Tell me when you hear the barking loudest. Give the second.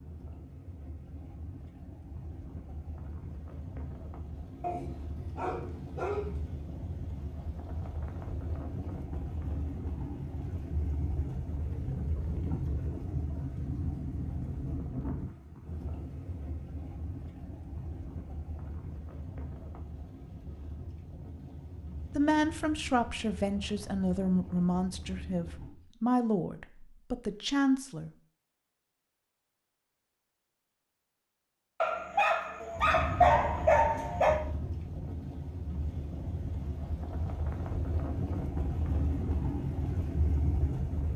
33 s.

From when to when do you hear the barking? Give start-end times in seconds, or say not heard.
4.6-6.3, 31.8-34.4.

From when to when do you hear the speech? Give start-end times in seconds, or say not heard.
22.1-28.1.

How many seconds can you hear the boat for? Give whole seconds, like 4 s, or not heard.
34 s.